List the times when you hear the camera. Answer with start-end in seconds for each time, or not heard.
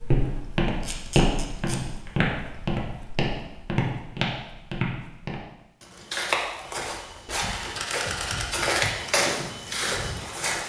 0.8-1.8, 7.2-8.6.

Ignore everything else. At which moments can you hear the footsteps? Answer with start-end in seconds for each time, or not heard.
0.0-10.6.